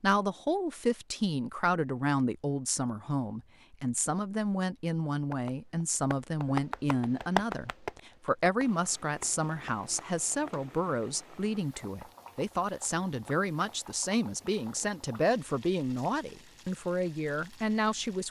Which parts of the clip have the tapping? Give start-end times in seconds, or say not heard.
5.3-10.5.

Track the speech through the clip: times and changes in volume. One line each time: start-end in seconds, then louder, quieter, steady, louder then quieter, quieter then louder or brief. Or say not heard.
0.0-18.2 steady.